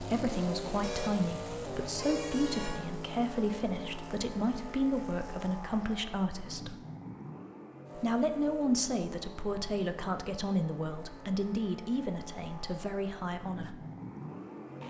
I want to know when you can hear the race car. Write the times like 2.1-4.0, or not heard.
0.0-14.8.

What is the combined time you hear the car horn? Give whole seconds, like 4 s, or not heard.
2 s.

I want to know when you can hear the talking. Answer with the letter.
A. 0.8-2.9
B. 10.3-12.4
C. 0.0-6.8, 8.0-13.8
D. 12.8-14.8
C.